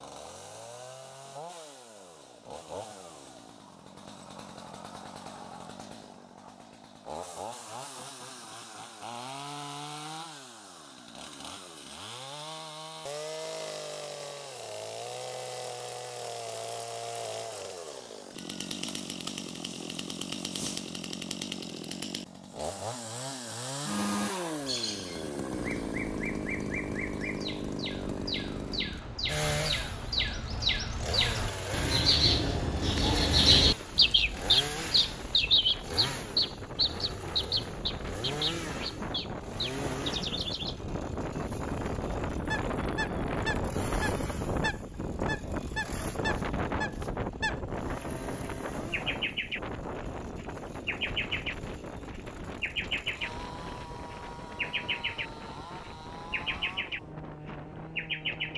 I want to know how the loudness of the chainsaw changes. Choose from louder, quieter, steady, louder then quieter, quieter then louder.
louder then quieter.